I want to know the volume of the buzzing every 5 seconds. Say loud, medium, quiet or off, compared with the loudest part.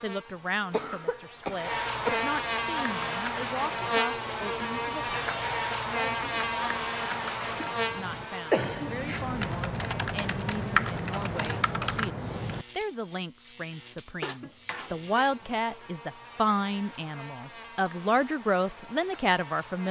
loud, loud, quiet, quiet.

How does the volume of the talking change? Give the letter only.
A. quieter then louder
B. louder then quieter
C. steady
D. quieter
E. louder
E.